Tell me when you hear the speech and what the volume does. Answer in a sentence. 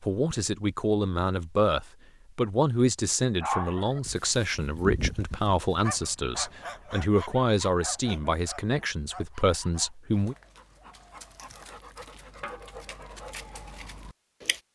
The speech can be heard from 0.0 to 10.3 s, at a steady volume.